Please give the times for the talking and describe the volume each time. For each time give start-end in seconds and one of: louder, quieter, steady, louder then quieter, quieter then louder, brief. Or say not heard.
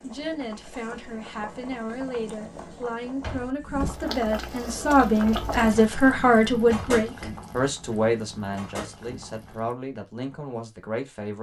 0.0-11.3 louder then quieter.